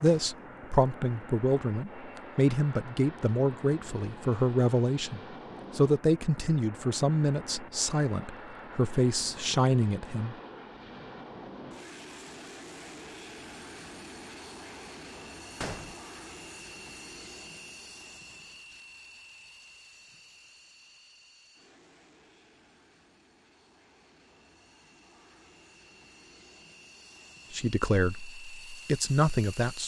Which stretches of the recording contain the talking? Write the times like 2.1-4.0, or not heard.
0.0-10.3, 27.5-29.8.